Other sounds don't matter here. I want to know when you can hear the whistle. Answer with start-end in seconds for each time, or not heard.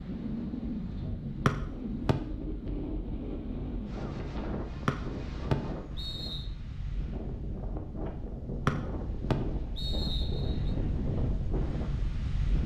1.4-2.1, 4.8-6.5, 8.7-10.7.